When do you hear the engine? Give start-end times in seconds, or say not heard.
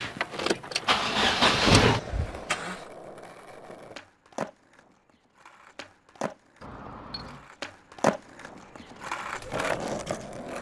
0.0-2.8.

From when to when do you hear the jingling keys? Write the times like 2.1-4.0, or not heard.
6.6-7.5.